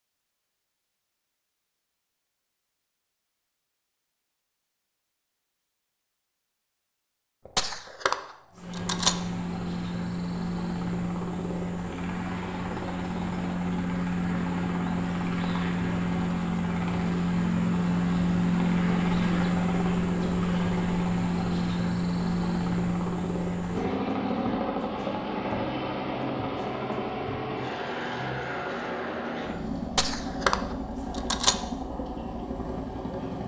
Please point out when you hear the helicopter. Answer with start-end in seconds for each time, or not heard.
8.5-33.4.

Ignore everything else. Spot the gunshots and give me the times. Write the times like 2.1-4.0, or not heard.
7.5-9.2, 29.9-31.6.